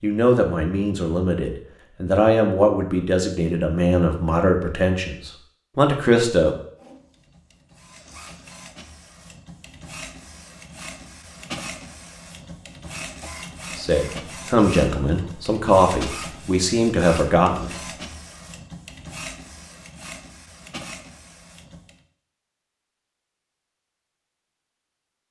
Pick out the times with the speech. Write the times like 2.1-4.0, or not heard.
0.0-6.5, 13.8-17.8.